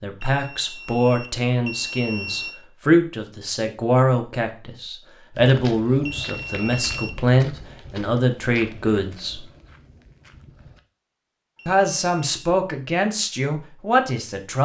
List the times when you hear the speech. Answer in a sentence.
The speech can be heard from 0.0 to 9.4 s and from 11.7 to 14.6 s.